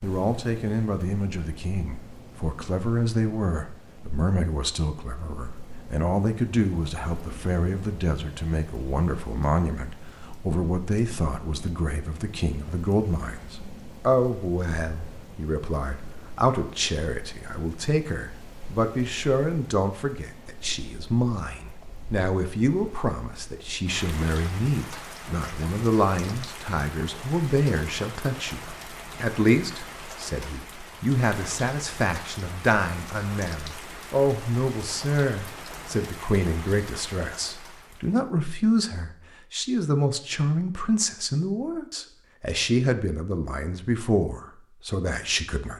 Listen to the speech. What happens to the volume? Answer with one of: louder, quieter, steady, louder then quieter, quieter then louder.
steady.